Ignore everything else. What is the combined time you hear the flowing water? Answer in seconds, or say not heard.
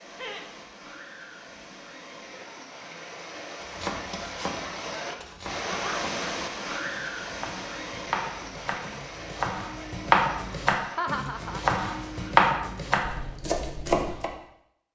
12 s.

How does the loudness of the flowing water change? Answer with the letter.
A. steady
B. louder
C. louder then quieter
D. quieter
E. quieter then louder
C.